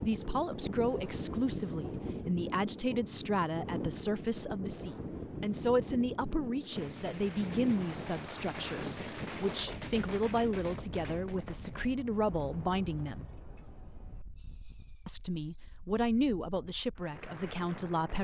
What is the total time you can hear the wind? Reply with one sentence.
You can hear the wind for 18 seconds altogether.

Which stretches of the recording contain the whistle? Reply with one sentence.
The whistle can't be heard in this clip.